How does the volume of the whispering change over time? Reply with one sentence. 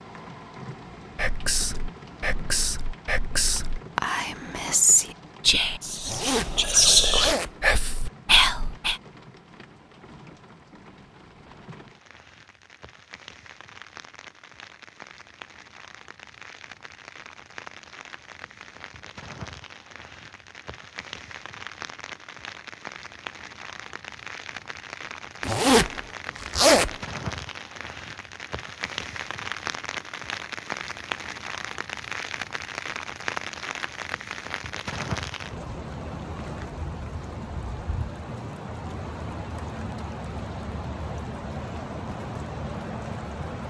The volume of the whispering goes up.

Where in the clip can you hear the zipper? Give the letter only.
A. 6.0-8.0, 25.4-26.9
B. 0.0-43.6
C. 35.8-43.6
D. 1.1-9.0
A.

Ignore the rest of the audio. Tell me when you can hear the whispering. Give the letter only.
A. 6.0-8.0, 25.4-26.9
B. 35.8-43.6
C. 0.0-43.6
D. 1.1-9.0
D.